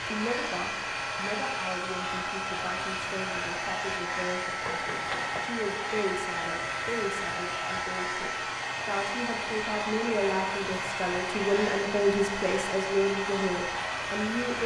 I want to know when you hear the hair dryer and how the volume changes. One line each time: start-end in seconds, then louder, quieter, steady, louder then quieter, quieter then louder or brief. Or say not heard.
0.0-14.6 steady.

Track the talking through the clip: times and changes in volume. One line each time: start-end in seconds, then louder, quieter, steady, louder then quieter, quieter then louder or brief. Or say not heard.
0.0-14.6 louder.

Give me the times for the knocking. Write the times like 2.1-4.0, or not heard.
4.6-5.5.